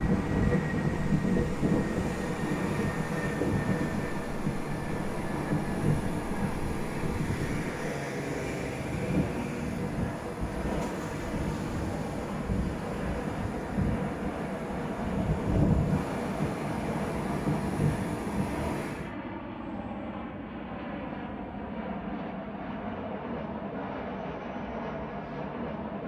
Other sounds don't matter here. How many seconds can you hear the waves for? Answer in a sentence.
You can hear the waves for 19 seconds altogether.